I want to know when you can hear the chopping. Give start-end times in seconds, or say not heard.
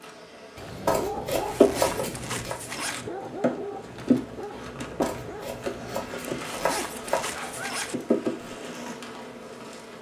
0.8-2.5, 5.0-7.2.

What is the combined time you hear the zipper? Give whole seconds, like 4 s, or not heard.
3 s.